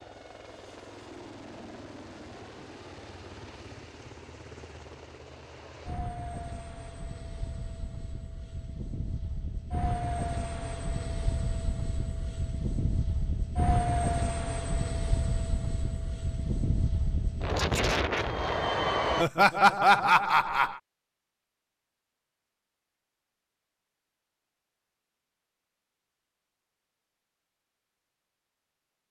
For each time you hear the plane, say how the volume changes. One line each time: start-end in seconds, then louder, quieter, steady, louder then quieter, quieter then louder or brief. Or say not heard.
0.0-19.2 louder.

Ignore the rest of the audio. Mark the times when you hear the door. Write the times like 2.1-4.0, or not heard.
not heard.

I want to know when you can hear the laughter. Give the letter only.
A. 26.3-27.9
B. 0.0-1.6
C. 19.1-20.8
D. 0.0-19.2
C.